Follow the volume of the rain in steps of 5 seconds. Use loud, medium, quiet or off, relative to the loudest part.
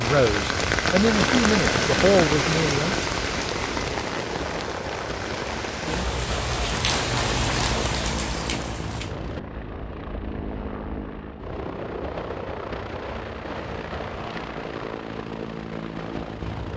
loud, loud, off, off.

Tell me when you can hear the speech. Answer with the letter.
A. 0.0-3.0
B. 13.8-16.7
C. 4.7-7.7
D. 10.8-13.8
A.